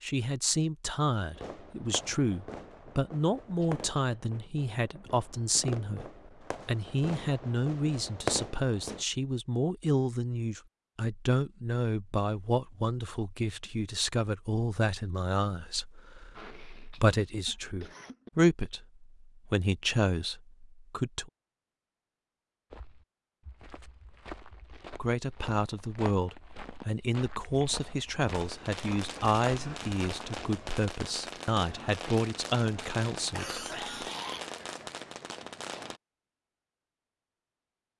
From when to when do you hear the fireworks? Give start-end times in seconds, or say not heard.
1.4-9.1, 28.2-36.0.